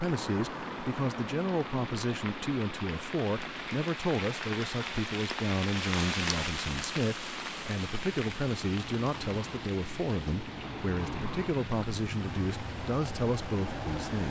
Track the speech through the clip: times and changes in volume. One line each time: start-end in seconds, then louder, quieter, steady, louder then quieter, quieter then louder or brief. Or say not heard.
0.0-14.2 steady.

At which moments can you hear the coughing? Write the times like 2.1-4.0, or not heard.
not heard.